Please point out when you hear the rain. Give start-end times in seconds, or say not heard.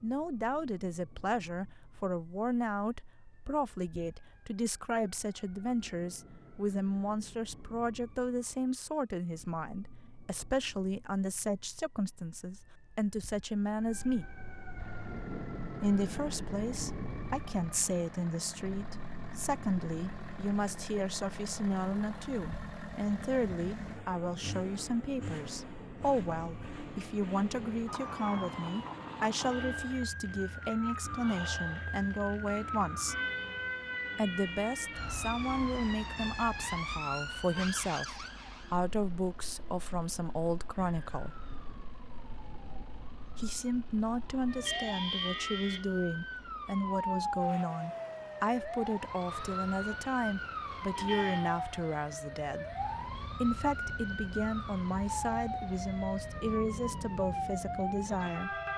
not heard.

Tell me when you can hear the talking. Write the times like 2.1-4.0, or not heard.
0.0-14.2, 15.8-33.1, 34.1-41.5, 43.4-52.6, 53.4-58.6.